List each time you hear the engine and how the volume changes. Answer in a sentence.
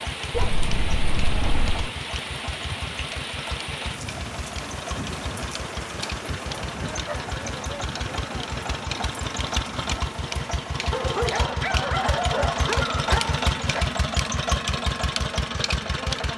You can hear the engine from 0.0 to 16.3 s, getting louder.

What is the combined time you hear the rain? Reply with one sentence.
You can hear the rain for 11 seconds altogether.